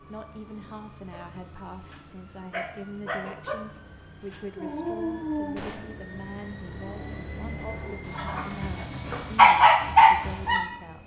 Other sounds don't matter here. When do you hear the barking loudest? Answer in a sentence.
The volume of the barking peaks at 10 seconds.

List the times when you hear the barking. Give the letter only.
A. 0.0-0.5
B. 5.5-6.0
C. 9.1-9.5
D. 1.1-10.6
D.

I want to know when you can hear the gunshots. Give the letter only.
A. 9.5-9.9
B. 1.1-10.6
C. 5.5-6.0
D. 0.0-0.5
C.